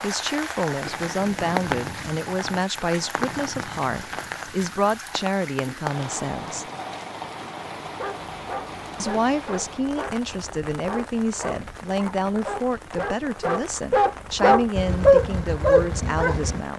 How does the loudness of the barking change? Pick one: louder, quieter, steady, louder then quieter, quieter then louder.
louder.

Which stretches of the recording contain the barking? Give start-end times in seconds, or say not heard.
7.8-16.6.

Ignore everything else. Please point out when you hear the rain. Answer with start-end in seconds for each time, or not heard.
0.0-16.7.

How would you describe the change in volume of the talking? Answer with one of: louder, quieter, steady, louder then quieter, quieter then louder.
steady.